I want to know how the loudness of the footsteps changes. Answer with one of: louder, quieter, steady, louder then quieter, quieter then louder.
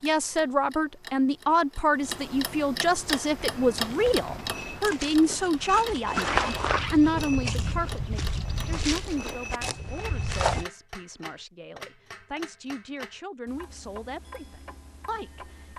louder then quieter.